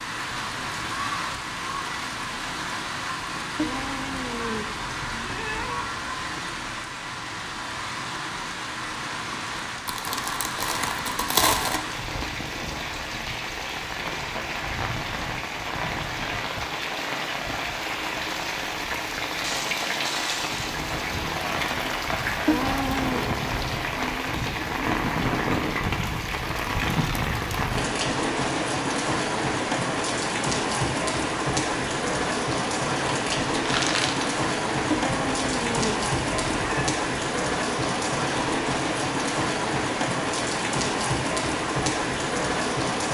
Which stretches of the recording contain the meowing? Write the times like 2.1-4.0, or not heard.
3.5-5.9, 22.4-23.2, 34.9-36.9.